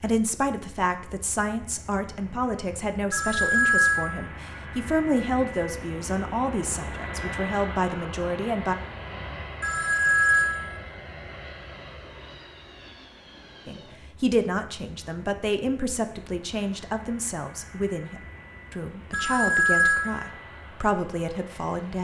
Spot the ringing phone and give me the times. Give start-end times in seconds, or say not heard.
3.1-4.2, 9.6-10.8, 19.1-20.3.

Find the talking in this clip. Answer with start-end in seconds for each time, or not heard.
0.0-8.8, 13.7-21.9.